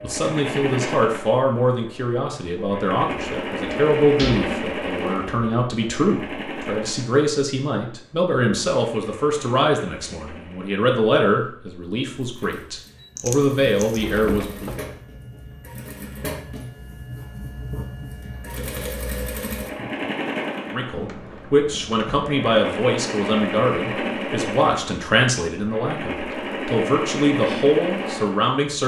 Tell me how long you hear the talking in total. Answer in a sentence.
The talking can be heard for 23 seconds in total.